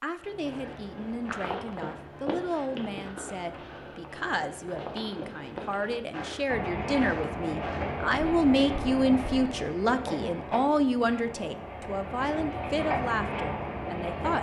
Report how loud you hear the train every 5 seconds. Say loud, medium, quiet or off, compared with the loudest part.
off, loud, loud.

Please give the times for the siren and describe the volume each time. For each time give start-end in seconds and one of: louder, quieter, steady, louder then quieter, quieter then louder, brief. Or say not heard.
not heard.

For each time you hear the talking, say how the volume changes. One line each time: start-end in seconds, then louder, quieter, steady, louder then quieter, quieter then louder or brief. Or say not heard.
0.0-14.3 louder then quieter.